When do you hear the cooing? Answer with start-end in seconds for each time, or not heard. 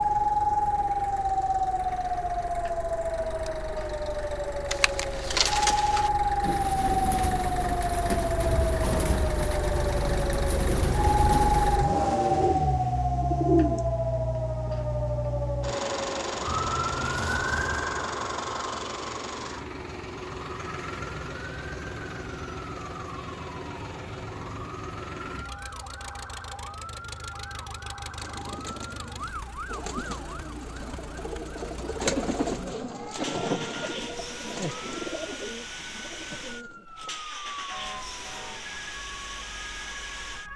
4.7-13.8, 28.0-37.2.